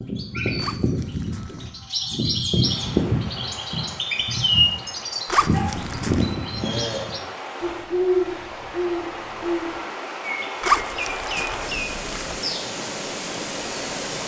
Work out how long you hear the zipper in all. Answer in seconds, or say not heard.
4 s.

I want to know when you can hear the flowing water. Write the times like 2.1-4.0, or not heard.
2.6-14.2.